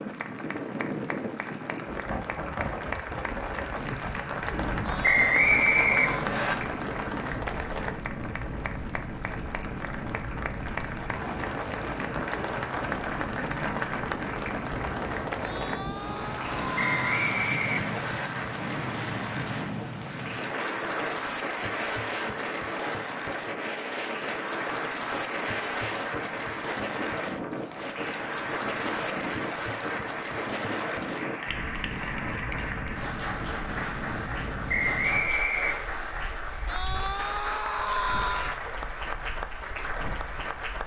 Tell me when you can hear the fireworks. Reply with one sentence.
The fireworks can't be heard in this clip.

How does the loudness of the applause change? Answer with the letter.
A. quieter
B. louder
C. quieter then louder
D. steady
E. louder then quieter
D.